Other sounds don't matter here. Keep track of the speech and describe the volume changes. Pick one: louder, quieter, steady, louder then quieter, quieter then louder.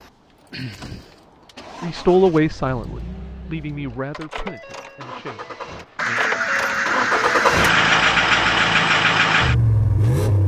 quieter.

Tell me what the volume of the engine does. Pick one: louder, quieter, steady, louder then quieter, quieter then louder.
louder.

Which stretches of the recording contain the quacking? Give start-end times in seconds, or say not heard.
6.0-7.8.